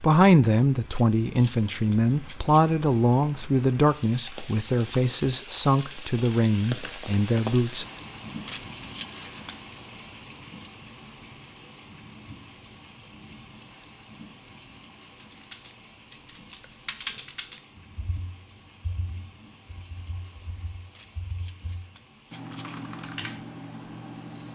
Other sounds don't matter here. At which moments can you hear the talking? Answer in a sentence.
You can hear the talking from 0.0 to 7.8 s.